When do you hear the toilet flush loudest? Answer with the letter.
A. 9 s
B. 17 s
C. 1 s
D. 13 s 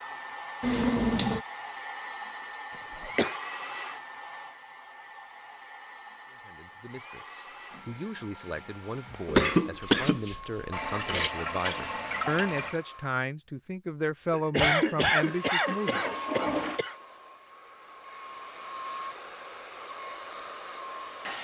C.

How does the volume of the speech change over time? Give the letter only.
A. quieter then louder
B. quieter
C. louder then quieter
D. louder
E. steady
D.